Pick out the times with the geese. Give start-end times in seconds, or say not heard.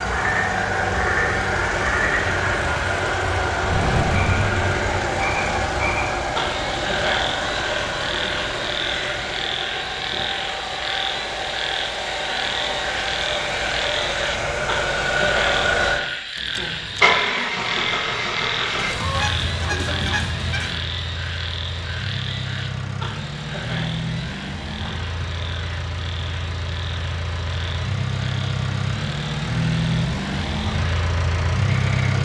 18.8-20.8.